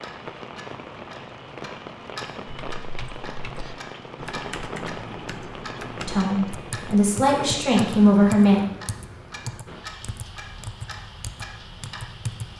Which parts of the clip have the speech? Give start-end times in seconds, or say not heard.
6.0-8.6.